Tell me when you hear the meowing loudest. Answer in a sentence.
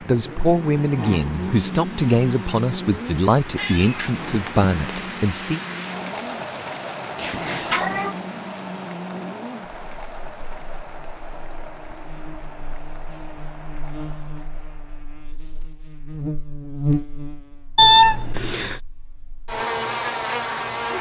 The volume of the meowing peaks at 18 seconds.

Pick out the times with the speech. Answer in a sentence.
You can hear the speech from 0.0 to 5.6 s.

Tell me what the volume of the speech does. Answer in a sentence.
The loudness of the speech stays about the same.